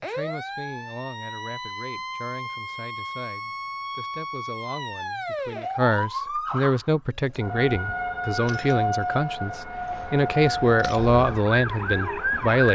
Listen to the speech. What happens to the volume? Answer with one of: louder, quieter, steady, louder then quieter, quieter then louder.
louder.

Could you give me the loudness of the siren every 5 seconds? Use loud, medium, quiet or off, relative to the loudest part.
medium, loud, loud.